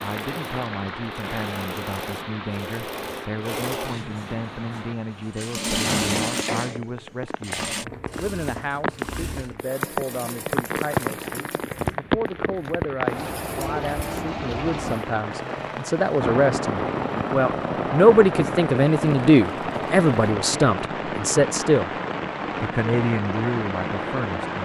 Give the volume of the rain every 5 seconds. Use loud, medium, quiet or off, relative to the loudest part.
medium, medium, loud, loud, loud.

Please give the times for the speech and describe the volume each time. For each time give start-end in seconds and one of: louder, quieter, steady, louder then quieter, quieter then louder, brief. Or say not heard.
0.0-21.9 louder
22.6-24.6 brief.